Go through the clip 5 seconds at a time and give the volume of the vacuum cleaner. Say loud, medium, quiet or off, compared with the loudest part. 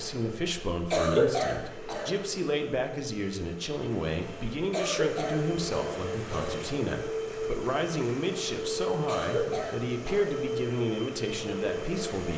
medium, loud, loud.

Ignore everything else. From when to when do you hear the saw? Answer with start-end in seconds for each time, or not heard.
not heard.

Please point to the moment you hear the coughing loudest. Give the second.
1 s.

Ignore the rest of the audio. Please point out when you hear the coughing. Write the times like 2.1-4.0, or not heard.
0.9-2.0, 4.7-6.7, 9.1-10.2.